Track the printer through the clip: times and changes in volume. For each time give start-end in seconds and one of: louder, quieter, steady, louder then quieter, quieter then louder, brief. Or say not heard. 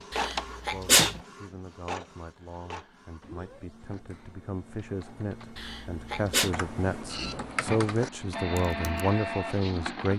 0.0-10.1 quieter then louder.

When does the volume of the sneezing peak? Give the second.
1 s.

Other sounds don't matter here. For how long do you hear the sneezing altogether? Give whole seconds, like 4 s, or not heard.
2 s.